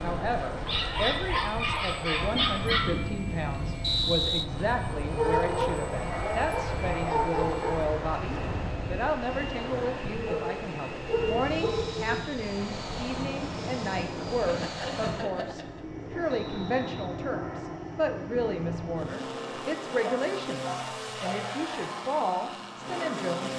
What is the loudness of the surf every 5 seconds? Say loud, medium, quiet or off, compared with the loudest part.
loud, loud, loud, off, off.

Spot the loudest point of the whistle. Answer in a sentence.
The loudest moment of the whistle is at 4 seconds.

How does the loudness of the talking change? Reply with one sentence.
The loudness of the talking stays about the same.